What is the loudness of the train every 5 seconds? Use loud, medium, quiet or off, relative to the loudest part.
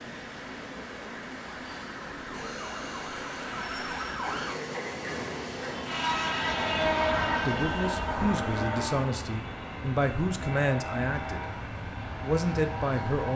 medium, loud, medium.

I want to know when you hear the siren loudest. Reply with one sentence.
The volume of the siren peaks at 4 seconds.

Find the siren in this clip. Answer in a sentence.
The siren can be heard from 0.0 to 4.5 s.